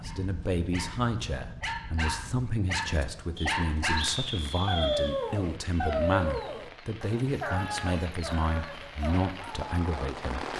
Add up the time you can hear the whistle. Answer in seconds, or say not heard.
2 s.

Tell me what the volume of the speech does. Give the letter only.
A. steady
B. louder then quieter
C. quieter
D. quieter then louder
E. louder
A.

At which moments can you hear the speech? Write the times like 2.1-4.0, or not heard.
0.0-10.5.